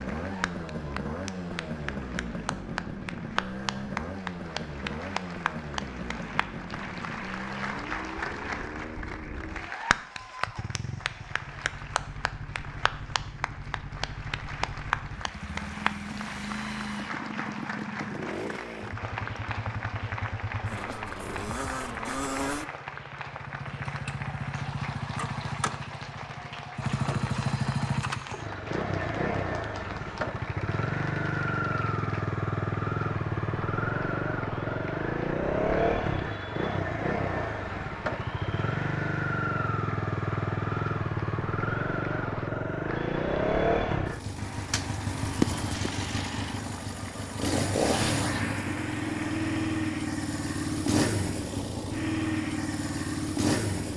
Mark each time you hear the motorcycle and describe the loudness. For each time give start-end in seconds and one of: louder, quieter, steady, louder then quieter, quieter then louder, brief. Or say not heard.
0.0-53.9 louder.